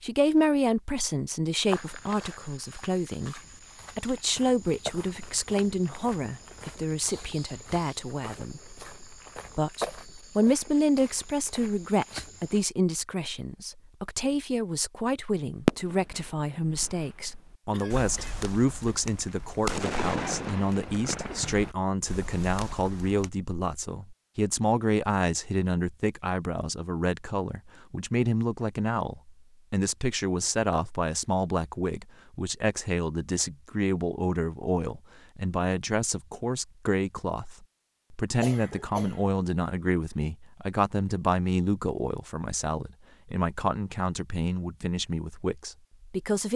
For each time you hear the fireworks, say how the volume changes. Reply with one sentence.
You can hear the fireworks from 15.4 to 23.3 s, getting louder then quieter.